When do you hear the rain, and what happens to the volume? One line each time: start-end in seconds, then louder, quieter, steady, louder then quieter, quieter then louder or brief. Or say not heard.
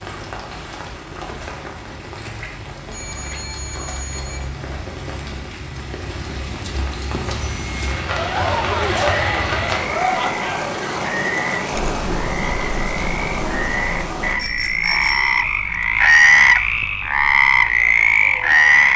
0.0-14.3 louder.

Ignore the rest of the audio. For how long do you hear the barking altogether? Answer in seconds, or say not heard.
not heard.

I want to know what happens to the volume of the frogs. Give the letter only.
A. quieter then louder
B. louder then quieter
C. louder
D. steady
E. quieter
C.